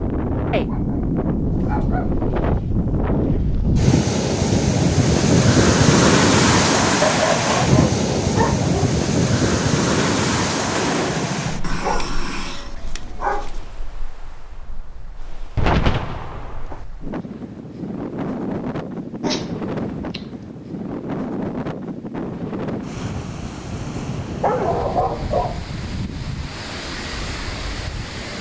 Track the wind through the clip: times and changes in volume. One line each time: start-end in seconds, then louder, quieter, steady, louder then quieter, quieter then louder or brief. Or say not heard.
0.0-28.3 quieter then louder.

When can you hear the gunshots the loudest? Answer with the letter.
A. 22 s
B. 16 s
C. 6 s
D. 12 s
B.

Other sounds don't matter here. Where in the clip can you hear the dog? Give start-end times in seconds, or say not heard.
0.5-2.1, 7.0-8.9, 11.6-13.7, 19.2-20.5, 24.4-25.6.